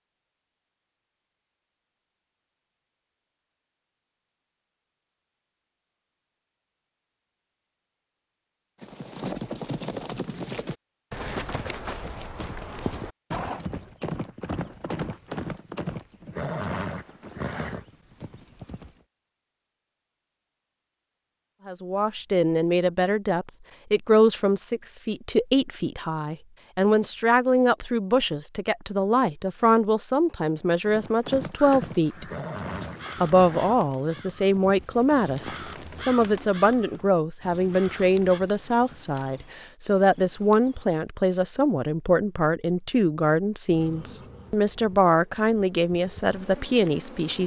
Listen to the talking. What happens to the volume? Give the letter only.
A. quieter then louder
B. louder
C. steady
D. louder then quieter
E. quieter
C.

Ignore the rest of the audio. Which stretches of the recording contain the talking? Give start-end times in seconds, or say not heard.
21.6-32.2, 33.2-47.4.